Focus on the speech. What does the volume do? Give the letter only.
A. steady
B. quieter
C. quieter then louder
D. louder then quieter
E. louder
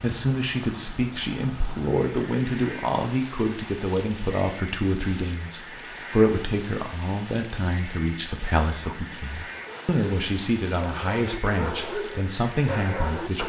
A.